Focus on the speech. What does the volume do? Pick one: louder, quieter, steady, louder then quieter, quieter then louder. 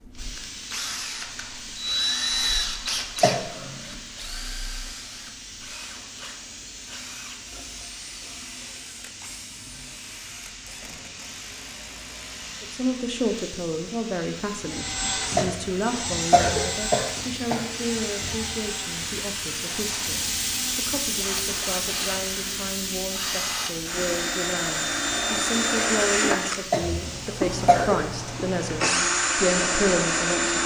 quieter then louder.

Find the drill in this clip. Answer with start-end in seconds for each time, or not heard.
0.0-12.8, 14.7-30.6.